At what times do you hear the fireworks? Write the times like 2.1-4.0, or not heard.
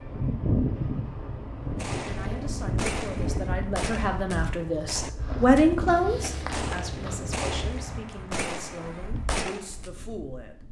1.8-9.9.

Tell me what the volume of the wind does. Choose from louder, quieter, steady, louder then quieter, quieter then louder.
quieter.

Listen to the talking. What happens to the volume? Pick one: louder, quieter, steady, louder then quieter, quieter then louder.
louder then quieter.